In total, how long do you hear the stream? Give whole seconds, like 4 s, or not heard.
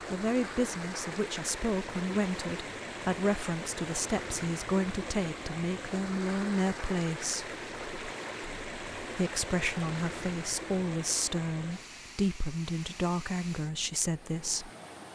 15 s.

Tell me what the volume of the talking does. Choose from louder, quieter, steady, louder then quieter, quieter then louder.
steady.